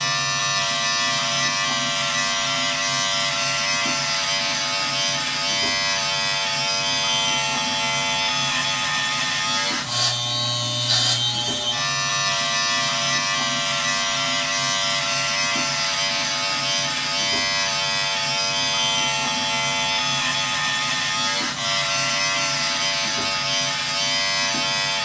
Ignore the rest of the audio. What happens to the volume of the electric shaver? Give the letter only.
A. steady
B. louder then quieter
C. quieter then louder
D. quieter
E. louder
A.